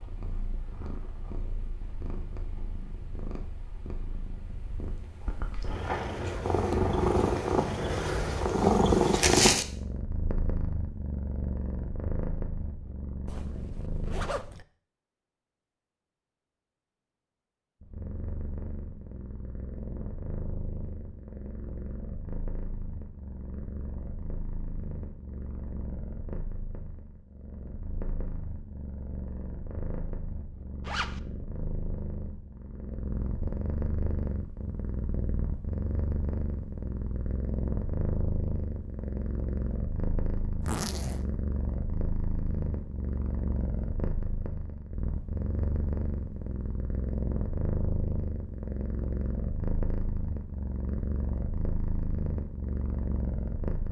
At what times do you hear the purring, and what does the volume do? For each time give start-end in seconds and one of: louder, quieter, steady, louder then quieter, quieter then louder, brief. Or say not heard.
0.0-14.3 louder then quieter
17.8-53.8 louder.